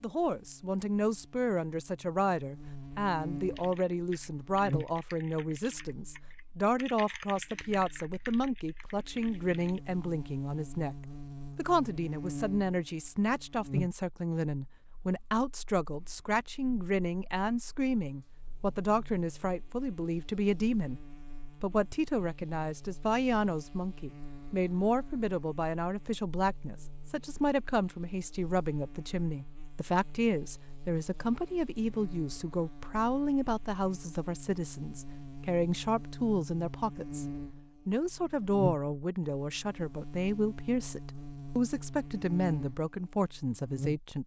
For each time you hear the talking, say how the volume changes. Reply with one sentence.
The talking can be heard from 0.0 to 10.9 s, at a steady volume; from 11.6 to 37.2 s, at a steady volume; and from 37.9 to 44.2 s, at a steady volume.